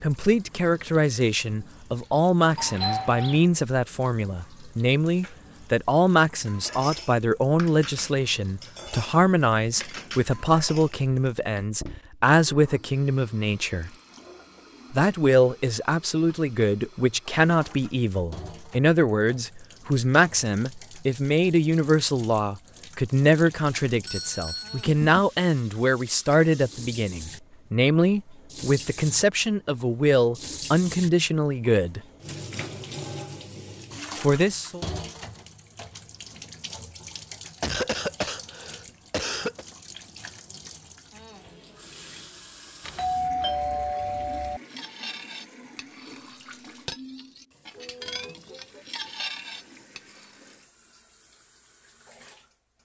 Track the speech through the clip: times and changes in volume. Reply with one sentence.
The speech can be heard from 0.0 to 13.9 s, at a steady volume; from 14.9 to 32.0 s, at a steady volume; and briefly from 34.1 to 34.9 s.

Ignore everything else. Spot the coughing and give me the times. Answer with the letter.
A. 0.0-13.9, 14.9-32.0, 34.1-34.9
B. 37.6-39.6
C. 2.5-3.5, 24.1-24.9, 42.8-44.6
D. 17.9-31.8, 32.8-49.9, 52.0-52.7
B.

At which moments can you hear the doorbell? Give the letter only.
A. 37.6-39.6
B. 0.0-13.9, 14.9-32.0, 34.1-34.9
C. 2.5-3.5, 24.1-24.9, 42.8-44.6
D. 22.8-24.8
C.